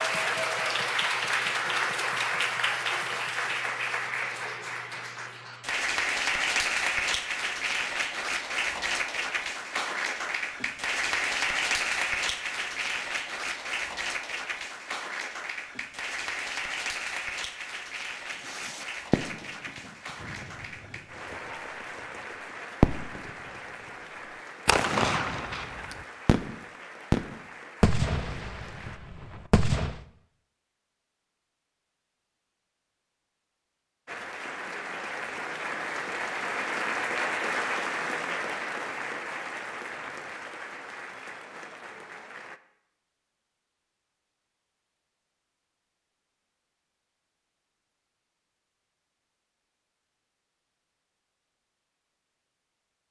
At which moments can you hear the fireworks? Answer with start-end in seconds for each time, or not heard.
18.4-21.4, 22.8-23.3, 24.6-30.0.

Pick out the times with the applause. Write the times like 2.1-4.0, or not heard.
0.0-29.0, 34.0-42.6.